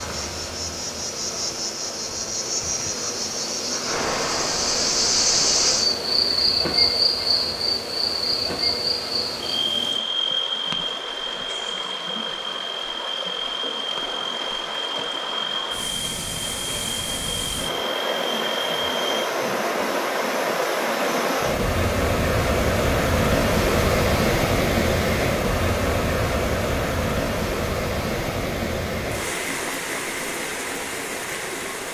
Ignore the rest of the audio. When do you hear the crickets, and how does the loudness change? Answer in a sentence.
You can hear the crickets from 0.0 to 19.2 s, getting louder then quieter.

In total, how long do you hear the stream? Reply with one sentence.
The stream can be heard for 32 seconds in total.